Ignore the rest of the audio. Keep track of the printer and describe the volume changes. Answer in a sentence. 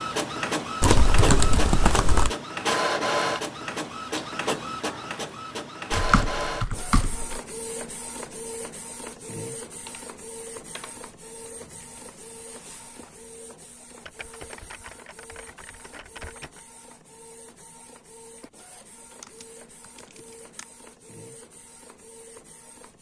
The loudness of the printer goes down.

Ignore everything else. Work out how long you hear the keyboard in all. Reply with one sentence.
The keyboard can be heard for 9 seconds in total.